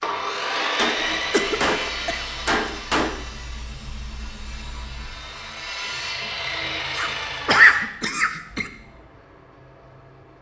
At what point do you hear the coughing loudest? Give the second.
8 s.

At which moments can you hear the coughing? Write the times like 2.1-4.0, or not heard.
1.3-2.5, 7.0-8.7.